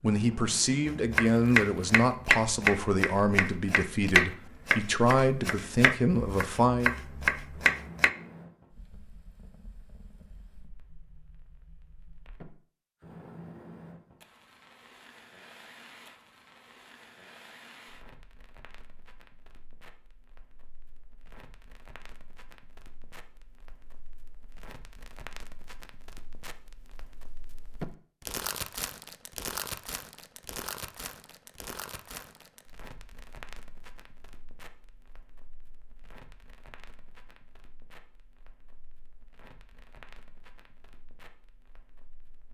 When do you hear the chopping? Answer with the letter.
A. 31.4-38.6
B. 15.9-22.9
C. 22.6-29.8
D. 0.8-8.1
D.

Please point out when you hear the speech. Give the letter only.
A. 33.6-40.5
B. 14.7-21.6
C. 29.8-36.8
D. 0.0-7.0
D.